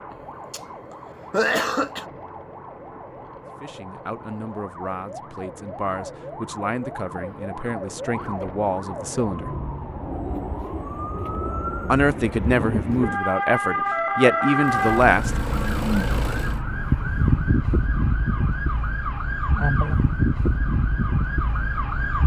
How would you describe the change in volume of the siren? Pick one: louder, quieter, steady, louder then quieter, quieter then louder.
louder.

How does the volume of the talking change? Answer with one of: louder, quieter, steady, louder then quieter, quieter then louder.
louder.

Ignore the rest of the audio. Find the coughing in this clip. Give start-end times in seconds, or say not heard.
0.1-0.6, 1.3-2.0.